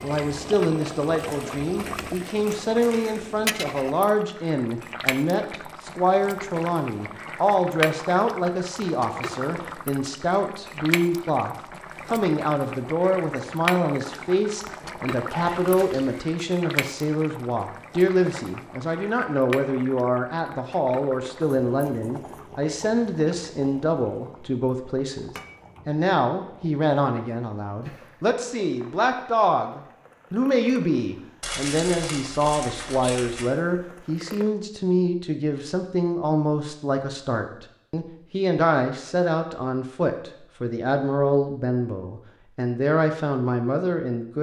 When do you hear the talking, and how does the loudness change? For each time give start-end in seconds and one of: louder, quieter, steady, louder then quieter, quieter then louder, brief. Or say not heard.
0.0-44.3 steady.